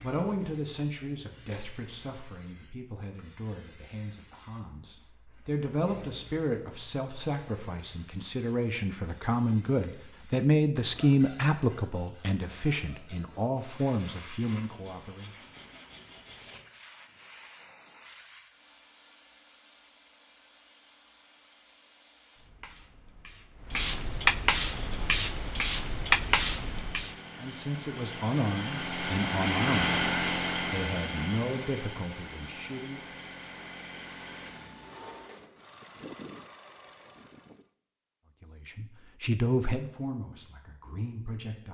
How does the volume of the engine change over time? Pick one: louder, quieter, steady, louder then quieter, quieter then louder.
louder then quieter.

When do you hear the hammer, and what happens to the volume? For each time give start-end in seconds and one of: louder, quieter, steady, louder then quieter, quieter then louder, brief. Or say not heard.
not heard.